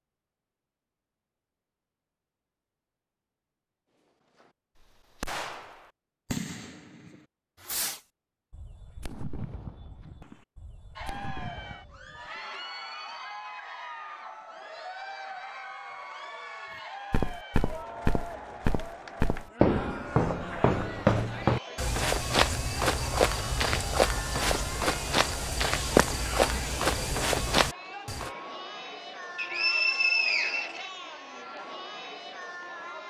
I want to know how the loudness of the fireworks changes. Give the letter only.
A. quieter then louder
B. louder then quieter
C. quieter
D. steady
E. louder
C.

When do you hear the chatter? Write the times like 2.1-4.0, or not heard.
10.9-33.0.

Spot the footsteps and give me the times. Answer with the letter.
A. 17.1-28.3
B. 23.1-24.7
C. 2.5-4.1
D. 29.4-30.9
A.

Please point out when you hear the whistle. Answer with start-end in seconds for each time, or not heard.
29.4-30.9.